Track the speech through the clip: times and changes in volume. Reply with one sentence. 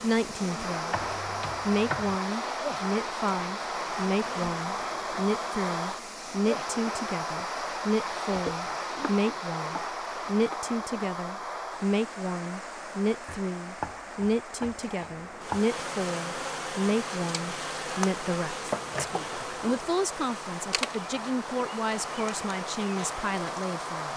You can hear the speech briefly from 0.0 to 1.0 s; and from 1.6 to 24.1 s, at a steady volume.